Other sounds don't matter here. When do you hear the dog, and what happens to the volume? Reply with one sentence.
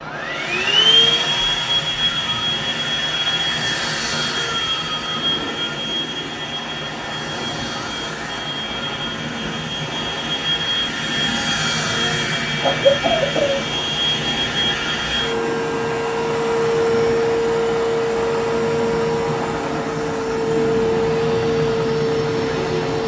You can't hear the dog here.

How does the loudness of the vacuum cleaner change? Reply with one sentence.
The loudness of the vacuum cleaner goes down, then up.